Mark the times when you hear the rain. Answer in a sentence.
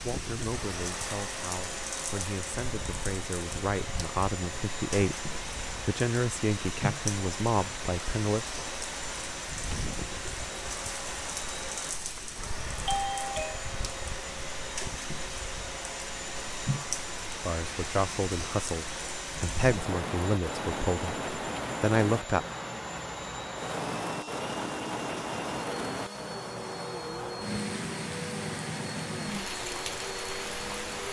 The rain can be heard from 0.0 to 31.0 s.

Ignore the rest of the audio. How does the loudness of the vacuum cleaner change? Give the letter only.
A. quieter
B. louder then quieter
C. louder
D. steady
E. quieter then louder
D.